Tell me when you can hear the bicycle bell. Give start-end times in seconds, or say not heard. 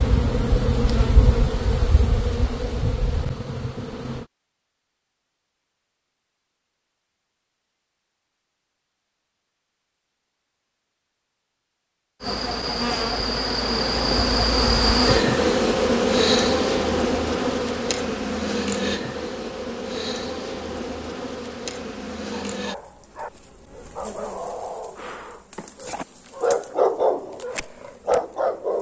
not heard.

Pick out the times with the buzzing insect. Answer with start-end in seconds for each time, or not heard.
0.0-4.2, 12.2-28.7.